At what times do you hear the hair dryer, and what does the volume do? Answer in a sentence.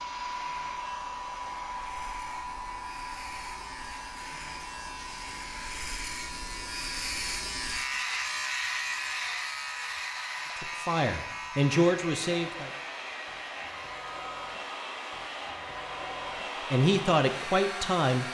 The hair dryer can be heard from 0.0 to 18.2 s, getting quieter then louder.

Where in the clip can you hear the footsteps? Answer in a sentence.
The footsteps can't be heard in this clip.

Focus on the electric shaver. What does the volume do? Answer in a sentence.
The volume of the electric shaver goes up, then down.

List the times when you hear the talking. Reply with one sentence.
You can hear the talking from 10.6 to 12.7 s and from 16.7 to 18.2 s.